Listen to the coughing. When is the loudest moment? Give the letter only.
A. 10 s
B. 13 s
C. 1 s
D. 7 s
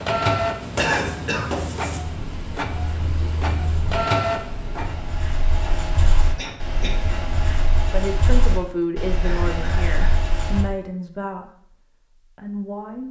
C.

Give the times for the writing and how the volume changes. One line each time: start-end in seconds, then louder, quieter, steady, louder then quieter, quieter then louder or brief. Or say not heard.
0.6-10.7 quieter then louder.